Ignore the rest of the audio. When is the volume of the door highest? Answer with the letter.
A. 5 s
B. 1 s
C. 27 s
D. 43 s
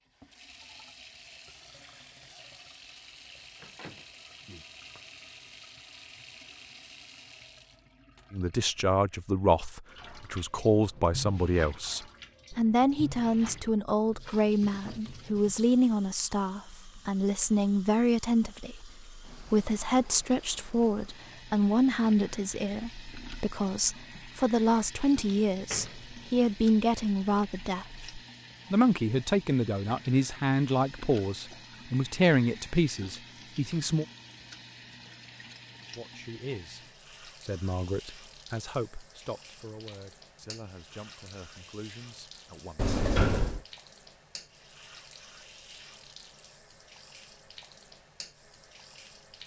D.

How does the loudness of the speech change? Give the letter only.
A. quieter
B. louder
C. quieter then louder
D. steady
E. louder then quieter
A.